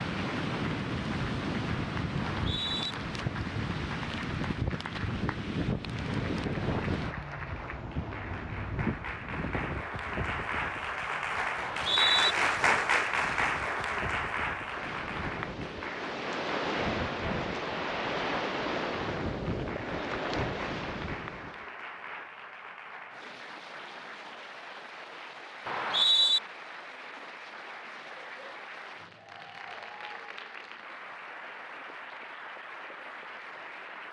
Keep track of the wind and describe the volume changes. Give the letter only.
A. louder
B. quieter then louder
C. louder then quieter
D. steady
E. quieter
B.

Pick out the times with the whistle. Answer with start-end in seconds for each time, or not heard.
2.3-3.0, 11.6-12.3, 25.6-26.4.